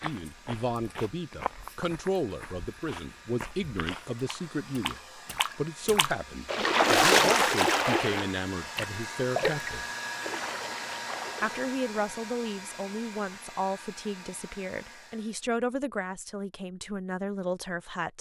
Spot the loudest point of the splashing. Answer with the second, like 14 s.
7 s.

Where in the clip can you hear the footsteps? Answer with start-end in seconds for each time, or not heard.
0.0-4.2.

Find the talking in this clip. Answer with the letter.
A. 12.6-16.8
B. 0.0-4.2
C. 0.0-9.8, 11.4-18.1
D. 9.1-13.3
C.